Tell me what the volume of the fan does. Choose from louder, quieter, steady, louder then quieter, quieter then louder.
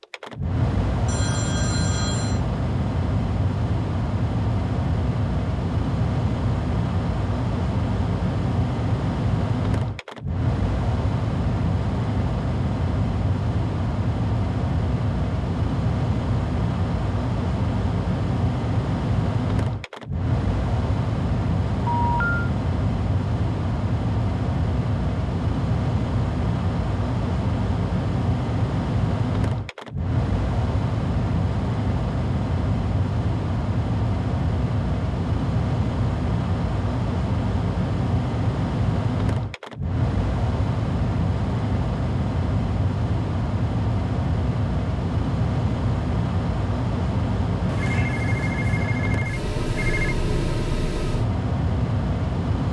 steady.